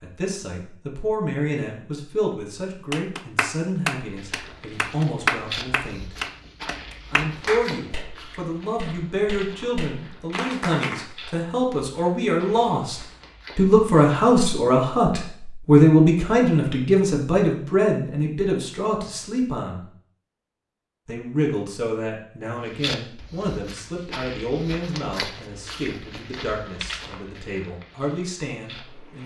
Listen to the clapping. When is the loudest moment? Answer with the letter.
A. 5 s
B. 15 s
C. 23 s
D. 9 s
A.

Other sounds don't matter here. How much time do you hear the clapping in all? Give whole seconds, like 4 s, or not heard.
8 s.